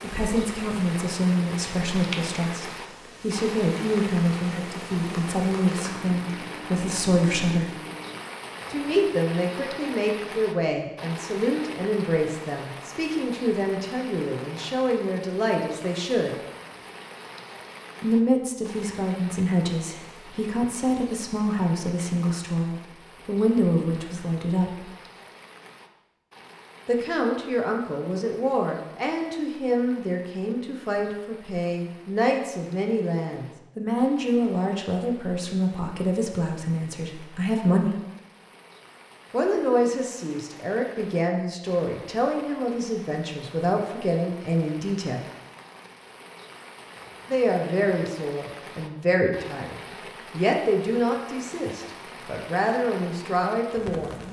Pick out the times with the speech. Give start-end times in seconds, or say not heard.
0.0-7.7, 8.7-16.4, 18.0-24.9, 26.9-37.9, 39.3-45.2, 47.2-54.1.